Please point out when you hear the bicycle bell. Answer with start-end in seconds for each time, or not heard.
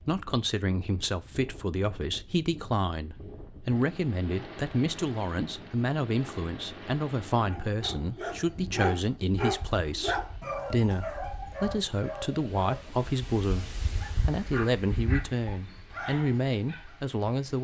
not heard.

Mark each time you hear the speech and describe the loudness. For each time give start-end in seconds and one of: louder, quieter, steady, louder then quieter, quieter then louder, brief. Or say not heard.
0.0-17.5 steady.